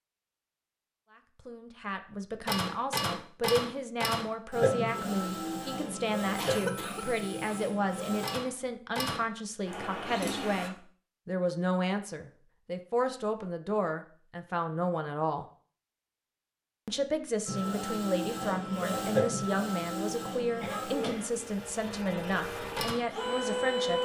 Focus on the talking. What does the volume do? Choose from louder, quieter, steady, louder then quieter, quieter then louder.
steady.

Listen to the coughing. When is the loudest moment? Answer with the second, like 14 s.
7 s.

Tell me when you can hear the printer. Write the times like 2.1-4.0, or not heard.
2.5-10.7, 17.4-23.9.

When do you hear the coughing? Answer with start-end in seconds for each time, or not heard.
6.3-7.8, 20.6-21.4.